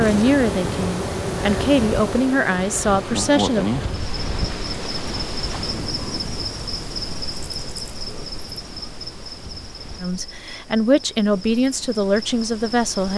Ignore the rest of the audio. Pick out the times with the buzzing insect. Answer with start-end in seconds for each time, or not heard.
0.0-13.1.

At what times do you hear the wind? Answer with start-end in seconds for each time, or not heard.
0.0-10.1.